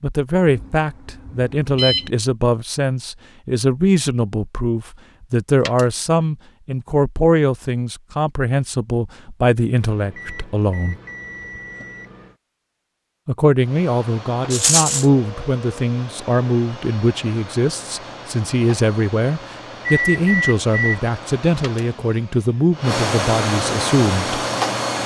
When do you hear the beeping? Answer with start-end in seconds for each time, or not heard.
0.5-2.1, 9.8-12.3, 19.9-21.0.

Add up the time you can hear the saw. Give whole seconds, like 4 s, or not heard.
not heard.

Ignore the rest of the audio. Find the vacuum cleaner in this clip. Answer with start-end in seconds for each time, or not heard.
13.6-25.0.